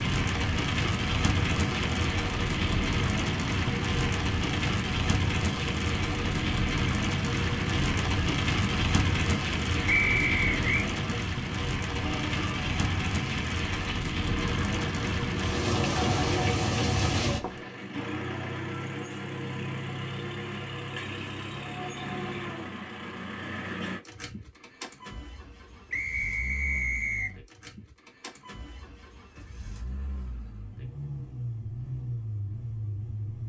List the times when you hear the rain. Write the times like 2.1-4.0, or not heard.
0.0-17.6.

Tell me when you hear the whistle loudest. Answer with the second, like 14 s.
10 s.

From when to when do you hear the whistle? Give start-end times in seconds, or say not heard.
9.8-10.9, 25.9-27.4.